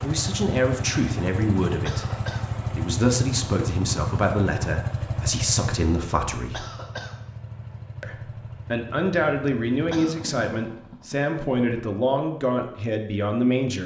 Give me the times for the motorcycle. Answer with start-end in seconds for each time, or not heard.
0.0-11.8.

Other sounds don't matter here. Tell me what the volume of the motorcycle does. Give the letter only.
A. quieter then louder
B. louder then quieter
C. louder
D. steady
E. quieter
E.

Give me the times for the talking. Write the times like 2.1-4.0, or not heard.
0.0-6.7, 8.0-13.8.